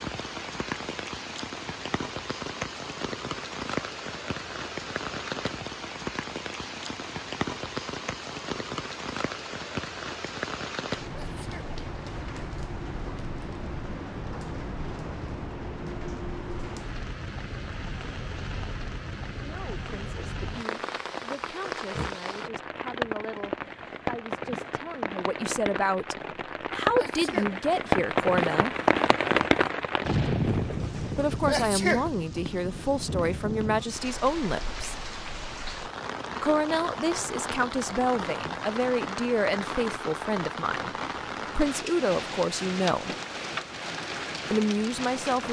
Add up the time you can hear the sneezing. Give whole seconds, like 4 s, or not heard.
2 s.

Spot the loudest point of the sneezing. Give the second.
32 s.